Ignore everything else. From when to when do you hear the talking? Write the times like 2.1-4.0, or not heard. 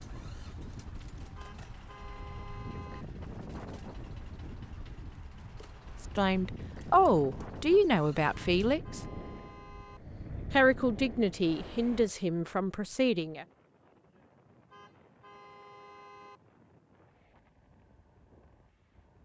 6.0-9.0, 10.5-13.4.